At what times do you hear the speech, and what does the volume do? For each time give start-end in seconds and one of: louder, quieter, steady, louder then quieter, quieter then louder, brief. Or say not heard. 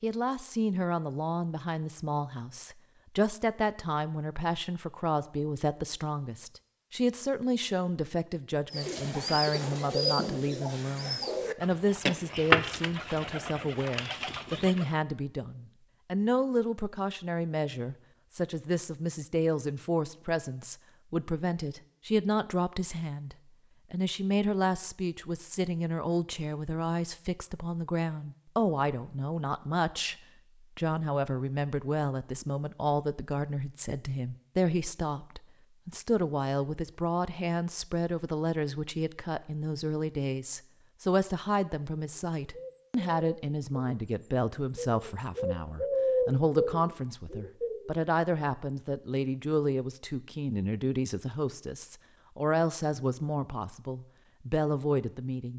0.0-30.1 steady
30.8-55.5 steady.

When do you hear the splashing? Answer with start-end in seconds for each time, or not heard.
not heard.